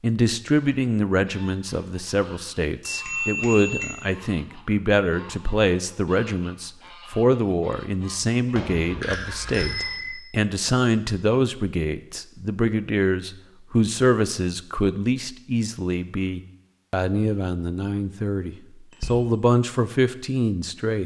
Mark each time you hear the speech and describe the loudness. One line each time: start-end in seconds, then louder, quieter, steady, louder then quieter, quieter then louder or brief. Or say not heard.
0.0-21.0 steady.